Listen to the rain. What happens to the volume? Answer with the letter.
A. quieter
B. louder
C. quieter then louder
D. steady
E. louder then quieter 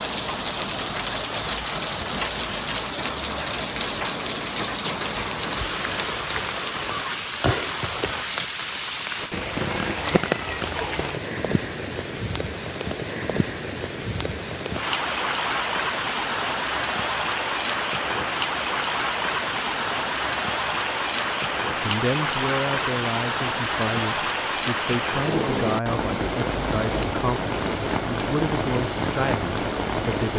D.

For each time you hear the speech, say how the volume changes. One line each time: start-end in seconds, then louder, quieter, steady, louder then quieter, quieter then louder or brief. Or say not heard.
21.8-30.3 steady.